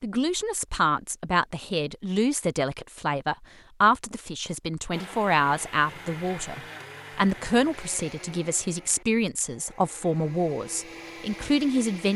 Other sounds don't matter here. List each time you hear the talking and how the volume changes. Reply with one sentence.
The talking can be heard from 0.0 to 12.1 s, at a steady volume.